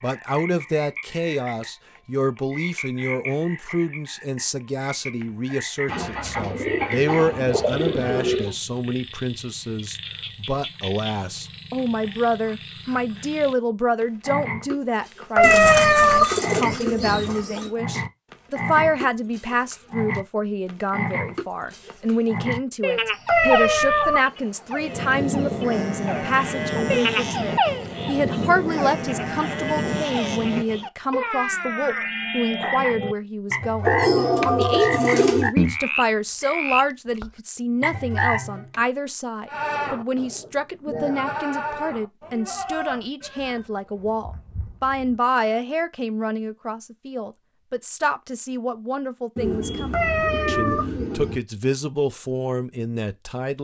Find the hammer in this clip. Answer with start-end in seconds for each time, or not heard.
not heard.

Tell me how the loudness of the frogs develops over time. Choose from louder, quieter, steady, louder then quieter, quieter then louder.
louder.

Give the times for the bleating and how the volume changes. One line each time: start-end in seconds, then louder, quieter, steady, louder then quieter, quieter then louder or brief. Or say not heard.
24.8-30.9 steady
39.5-45.6 louder then quieter.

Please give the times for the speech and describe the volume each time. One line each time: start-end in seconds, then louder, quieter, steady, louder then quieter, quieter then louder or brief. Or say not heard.
0.0-53.6 steady.